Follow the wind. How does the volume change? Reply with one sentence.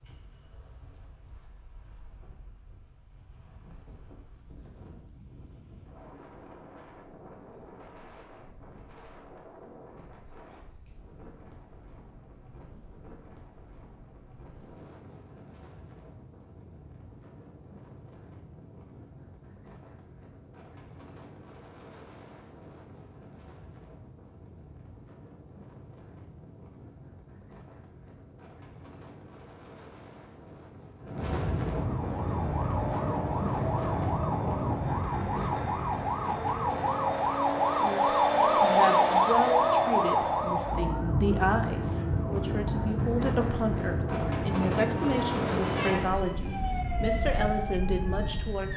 The volume of the wind goes up.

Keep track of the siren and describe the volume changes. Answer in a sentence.
The volume of the siren goes up, then down.